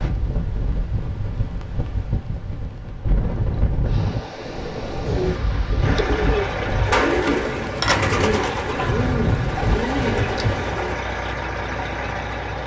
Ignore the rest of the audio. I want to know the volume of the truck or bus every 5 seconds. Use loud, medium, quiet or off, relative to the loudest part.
off, loud, loud.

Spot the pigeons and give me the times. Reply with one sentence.
The pigeons can be heard from 5.0 to 10.9 s.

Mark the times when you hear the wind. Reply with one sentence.
The wind can be heard from 0.0 to 10.6 s.